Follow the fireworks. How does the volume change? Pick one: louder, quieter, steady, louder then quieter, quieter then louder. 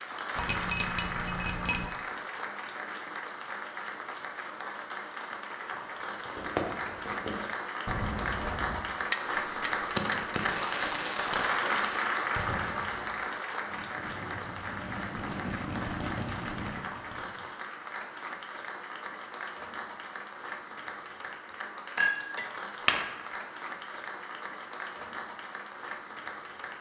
quieter then louder.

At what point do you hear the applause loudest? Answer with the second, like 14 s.
12 s.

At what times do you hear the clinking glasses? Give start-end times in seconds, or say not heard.
0.3-1.9, 9.1-10.2, 21.9-23.1.